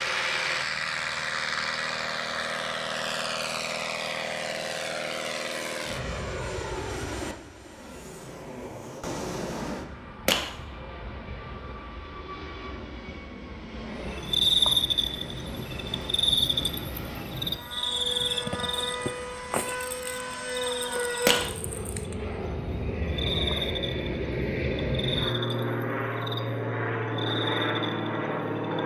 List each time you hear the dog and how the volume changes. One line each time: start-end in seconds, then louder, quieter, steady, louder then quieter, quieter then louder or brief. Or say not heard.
not heard.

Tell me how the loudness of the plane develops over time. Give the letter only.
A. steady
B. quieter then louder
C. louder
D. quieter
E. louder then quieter
B.